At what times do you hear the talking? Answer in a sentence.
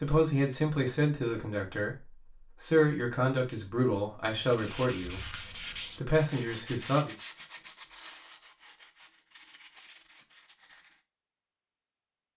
You can hear the talking from 0.0 to 7.2 s.